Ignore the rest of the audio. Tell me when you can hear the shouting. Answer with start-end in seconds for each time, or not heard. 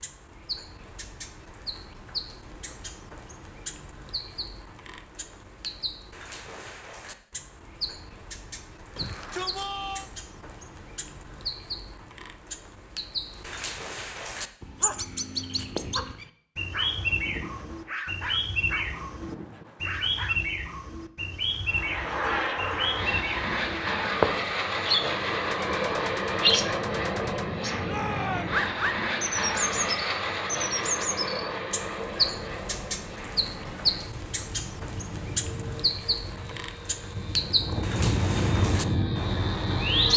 8.9-10.1, 27.8-28.6.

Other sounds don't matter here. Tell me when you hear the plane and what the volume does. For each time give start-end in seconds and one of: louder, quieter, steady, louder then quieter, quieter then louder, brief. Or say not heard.
21.6-40.1 quieter then louder.